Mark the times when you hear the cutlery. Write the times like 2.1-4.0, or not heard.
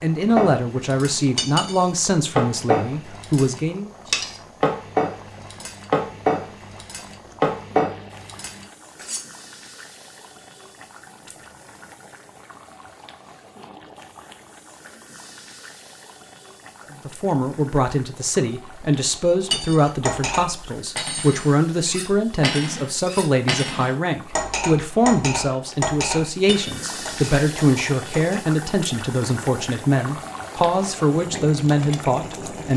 0.3-9.2, 19.2-28.4.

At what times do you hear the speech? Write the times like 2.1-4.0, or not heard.
0.0-3.9, 17.1-32.7.